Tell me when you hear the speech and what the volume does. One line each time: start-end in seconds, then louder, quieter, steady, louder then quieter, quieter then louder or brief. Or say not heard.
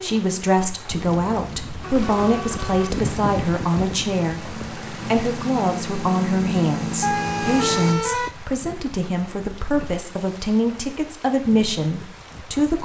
0.0-12.7 steady.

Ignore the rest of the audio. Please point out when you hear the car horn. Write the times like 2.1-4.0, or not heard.
0.9-2.9, 7.0-8.4.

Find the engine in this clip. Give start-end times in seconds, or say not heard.
2.9-8.0.